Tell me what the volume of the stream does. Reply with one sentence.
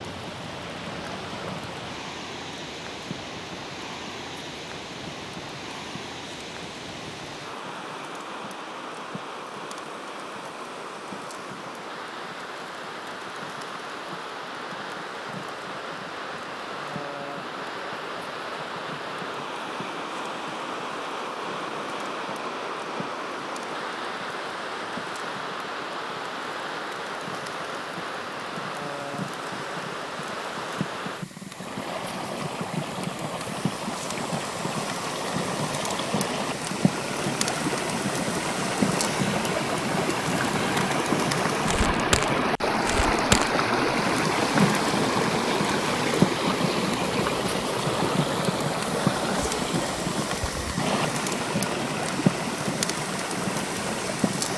The loudness of the stream goes up.